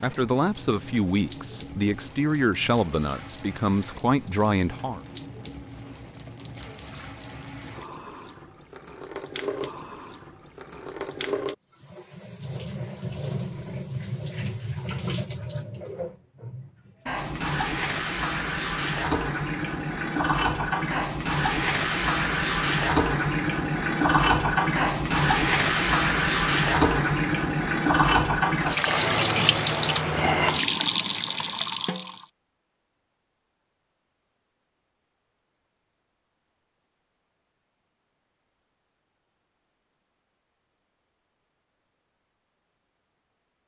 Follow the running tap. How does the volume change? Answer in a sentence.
The loudness of the running tap goes up.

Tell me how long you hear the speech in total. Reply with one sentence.
The speech can be heard for 5 seconds in total.